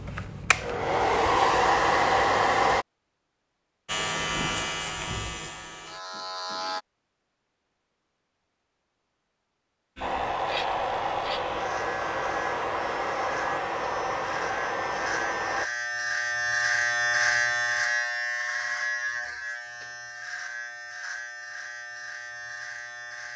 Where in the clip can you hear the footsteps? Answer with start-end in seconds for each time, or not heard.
not heard.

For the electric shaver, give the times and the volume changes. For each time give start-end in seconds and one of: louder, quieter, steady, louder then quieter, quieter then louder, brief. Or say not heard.
3.9-6.8 brief
9.9-23.3 louder then quieter.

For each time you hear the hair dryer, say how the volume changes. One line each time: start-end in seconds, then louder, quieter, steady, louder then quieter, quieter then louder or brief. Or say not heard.
0.0-2.9 brief
10.0-15.7 steady.